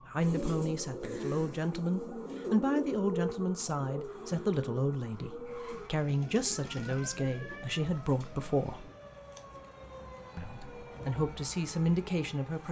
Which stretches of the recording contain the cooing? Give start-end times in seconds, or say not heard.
0.1-9.0.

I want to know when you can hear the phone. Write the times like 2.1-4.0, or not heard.
not heard.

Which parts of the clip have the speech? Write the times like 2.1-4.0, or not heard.
0.1-8.9, 10.3-12.6.